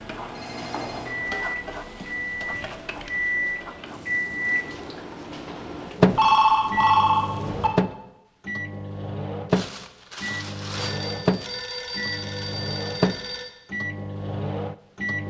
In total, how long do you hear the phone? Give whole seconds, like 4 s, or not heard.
5 s.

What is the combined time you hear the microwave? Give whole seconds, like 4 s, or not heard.
15 s.